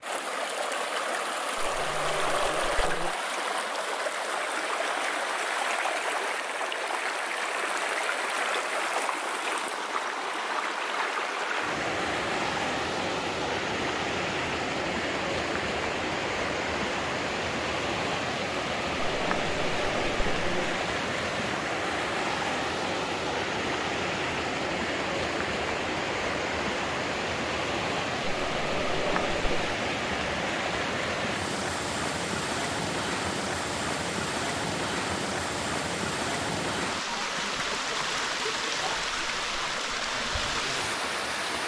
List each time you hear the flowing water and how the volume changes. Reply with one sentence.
You can hear the flowing water from 0.0 to 41.6 s, at a steady volume.